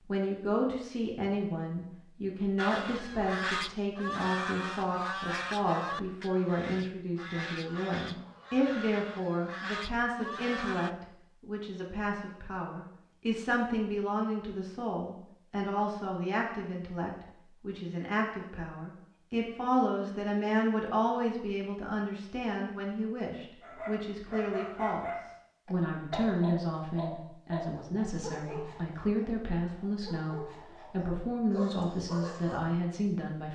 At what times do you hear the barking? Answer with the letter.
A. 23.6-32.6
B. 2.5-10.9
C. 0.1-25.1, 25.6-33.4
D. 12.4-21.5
A.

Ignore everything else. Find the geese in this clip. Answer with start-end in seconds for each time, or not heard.
2.5-10.9.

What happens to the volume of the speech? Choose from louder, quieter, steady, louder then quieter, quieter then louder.
steady.